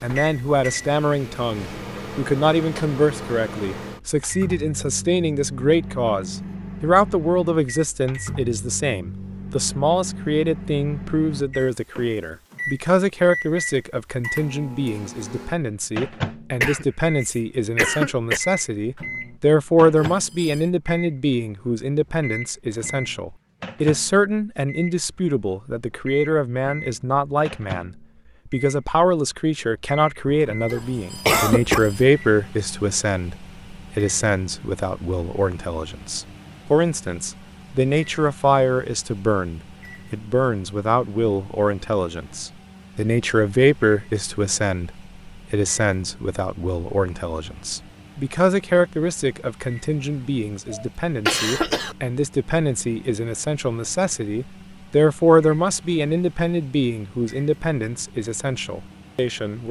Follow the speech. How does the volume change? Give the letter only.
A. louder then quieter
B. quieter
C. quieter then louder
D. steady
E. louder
D.